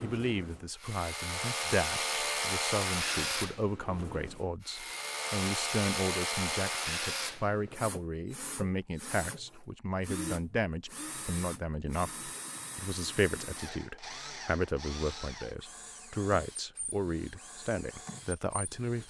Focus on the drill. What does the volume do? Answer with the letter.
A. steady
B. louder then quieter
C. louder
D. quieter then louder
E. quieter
E.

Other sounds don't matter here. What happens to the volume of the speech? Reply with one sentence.
The volume of the speech stays about the same.